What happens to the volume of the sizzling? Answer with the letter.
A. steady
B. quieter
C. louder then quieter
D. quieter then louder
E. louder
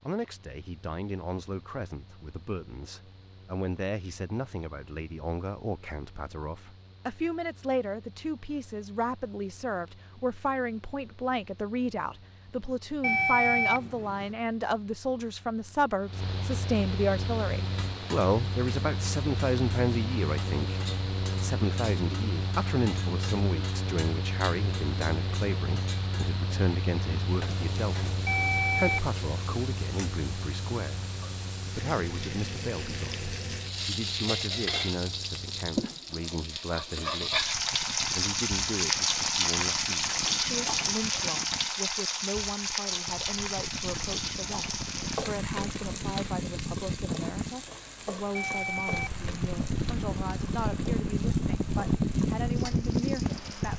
C.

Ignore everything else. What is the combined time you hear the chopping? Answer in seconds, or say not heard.
not heard.